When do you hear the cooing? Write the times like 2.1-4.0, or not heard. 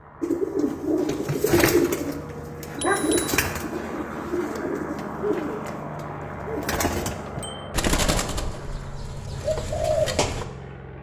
0.2-10.4.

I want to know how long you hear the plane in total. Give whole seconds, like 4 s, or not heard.
11 s.